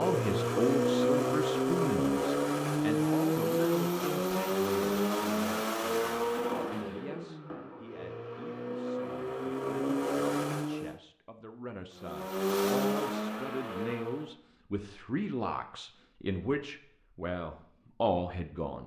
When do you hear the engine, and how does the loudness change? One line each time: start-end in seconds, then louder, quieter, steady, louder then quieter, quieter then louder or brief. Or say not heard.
0.0-10.9 quieter then louder
11.9-14.3 brief.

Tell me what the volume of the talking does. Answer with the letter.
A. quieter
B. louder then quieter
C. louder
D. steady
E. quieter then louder
E.